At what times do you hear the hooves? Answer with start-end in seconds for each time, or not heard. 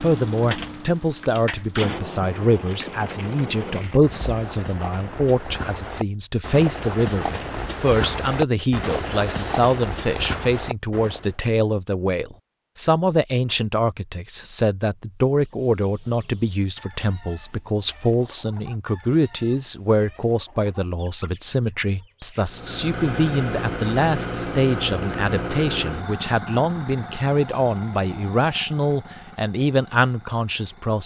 2.5-11.3.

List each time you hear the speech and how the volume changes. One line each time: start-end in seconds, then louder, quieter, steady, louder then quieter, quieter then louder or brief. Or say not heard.
0.0-31.0 steady.